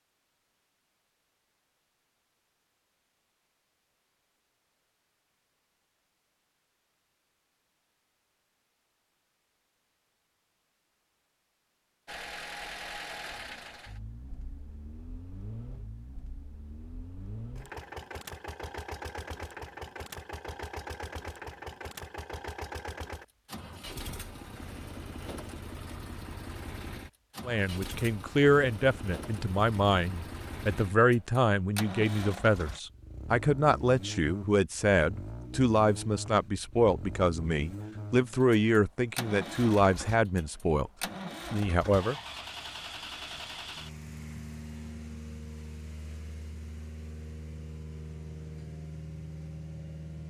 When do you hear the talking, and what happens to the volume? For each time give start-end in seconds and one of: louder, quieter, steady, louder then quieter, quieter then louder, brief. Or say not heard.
27.4-40.9 steady
41.5-42.1 brief.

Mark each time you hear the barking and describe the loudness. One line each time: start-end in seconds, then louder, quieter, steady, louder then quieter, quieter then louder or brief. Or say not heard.
not heard.